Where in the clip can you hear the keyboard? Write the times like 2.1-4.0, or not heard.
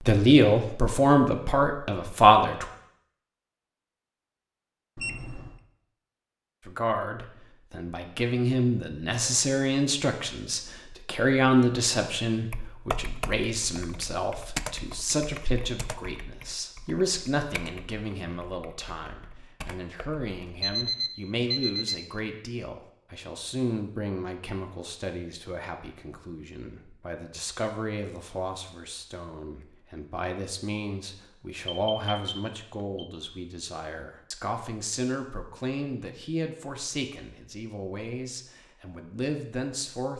12.5-20.7.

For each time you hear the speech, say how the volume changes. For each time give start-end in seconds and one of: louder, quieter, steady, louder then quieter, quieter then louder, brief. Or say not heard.
0.0-2.6 brief
6.7-40.1 quieter.